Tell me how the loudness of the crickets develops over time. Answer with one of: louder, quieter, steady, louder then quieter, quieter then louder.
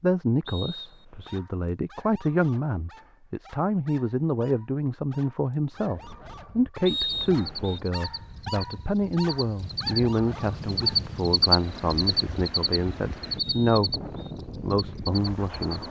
louder then quieter.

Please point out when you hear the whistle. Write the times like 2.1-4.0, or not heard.
0.5-1.4, 6.8-7.8, 13.3-14.3.